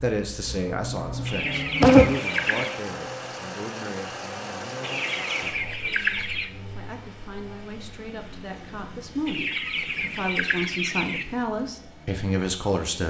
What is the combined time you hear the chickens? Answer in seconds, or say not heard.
5 s.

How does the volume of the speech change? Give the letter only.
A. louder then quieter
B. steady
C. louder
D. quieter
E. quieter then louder
E.